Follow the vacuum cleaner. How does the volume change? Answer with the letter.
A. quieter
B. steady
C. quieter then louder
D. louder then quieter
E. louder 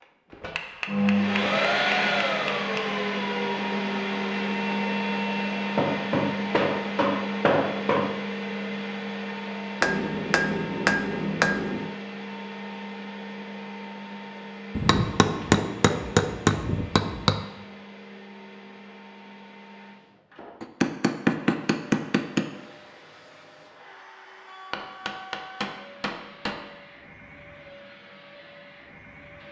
A.